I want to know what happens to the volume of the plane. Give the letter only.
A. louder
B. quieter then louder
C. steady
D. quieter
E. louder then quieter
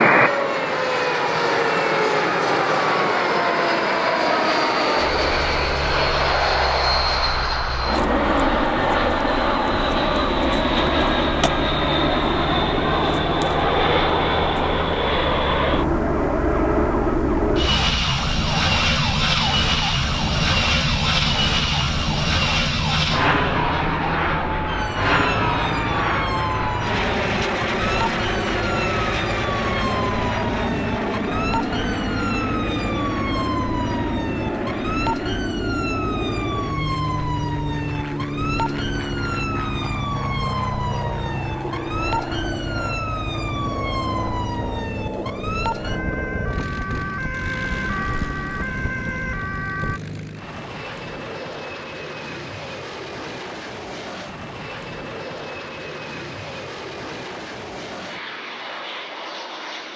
D.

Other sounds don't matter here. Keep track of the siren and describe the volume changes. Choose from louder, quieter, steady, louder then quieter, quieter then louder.
steady.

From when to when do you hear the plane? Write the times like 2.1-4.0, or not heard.
0.0-59.9.